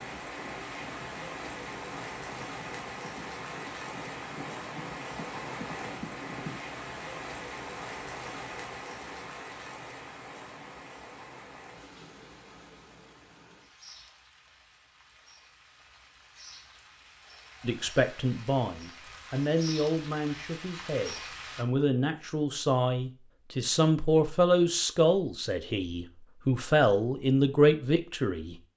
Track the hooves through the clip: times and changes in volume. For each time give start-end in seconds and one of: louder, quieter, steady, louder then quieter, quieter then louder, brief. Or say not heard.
0.0-6.6 louder.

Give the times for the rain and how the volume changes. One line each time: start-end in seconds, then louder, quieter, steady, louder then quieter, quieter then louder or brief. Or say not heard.
0.0-21.6 quieter then louder.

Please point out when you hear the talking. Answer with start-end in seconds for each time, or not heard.
17.6-28.6.